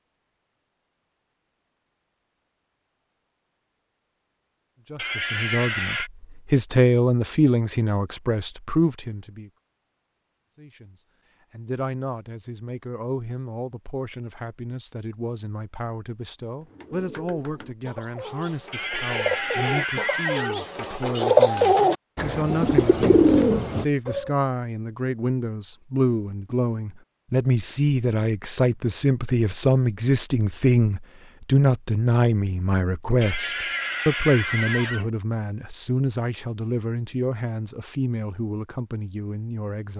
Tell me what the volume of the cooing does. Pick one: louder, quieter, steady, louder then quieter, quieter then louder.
louder.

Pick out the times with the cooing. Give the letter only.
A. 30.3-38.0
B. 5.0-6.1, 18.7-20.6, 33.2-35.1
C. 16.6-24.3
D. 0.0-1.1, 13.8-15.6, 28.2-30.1
C.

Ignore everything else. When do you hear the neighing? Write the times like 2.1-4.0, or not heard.
5.0-6.1, 18.7-20.6, 33.2-35.1.